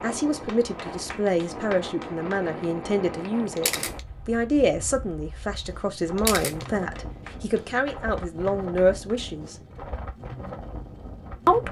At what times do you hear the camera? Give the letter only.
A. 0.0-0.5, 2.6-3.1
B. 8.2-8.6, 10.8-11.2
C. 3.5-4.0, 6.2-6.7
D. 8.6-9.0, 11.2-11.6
C.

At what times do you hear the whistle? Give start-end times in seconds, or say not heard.
not heard.